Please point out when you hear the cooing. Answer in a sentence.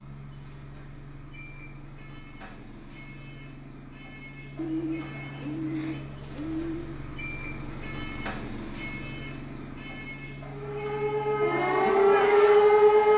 The cooing can be heard from 4.5 to 7.0 s.